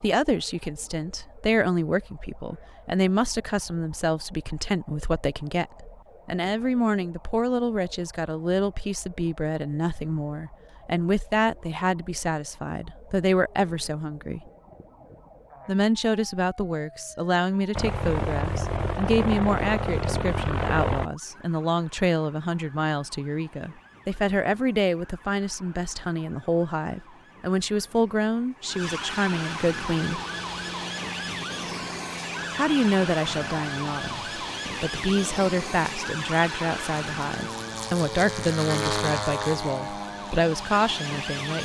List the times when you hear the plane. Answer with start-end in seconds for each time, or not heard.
17.8-21.1, 29.6-41.5.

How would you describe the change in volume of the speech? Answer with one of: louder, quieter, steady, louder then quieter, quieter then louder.
steady.